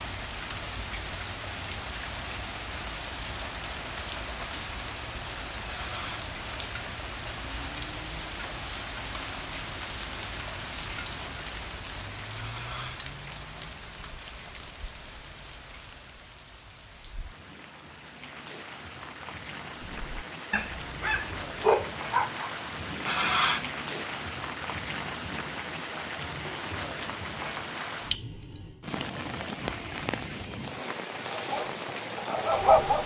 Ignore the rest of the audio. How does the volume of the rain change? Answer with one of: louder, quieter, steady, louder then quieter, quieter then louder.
quieter then louder.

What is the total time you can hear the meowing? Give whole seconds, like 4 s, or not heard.
2 s.